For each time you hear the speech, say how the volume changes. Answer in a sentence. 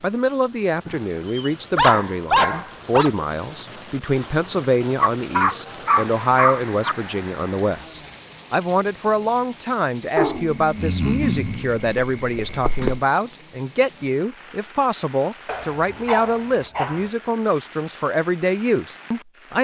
The speech can be heard from 0.0 to 19.5 s, at a steady volume.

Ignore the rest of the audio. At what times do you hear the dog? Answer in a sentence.
The dog can be heard from 0.8 to 3.1 s, from 5.0 to 7.0 s, from 10.2 to 13.0 s and from 15.4 to 17.1 s.